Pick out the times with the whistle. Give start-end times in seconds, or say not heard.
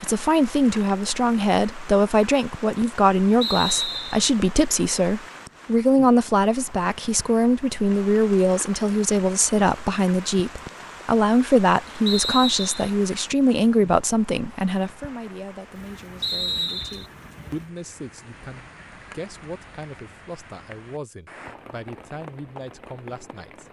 3.4-4.2, 12.1-12.9, 16.2-17.1.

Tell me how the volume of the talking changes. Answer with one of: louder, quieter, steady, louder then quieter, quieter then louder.
quieter.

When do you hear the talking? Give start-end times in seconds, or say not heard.
0.0-23.6.